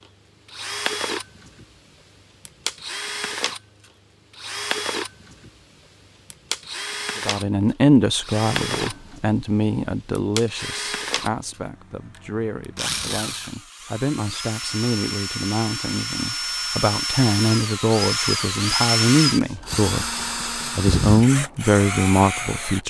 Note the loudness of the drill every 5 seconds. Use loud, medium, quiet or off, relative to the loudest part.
medium, medium, medium, loud, loud.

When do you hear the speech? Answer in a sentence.
You can hear the speech from 7.2 to 20.1 s and from 20.8 to 22.8 s.